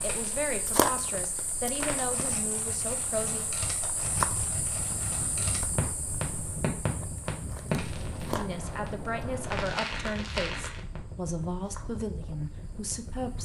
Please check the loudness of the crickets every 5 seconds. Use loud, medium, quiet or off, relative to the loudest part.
loud, medium, quiet.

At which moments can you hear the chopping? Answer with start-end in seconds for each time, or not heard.
not heard.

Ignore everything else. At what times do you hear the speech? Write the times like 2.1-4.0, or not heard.
0.0-3.5, 8.2-13.4.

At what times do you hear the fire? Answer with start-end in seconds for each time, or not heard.
0.0-11.0.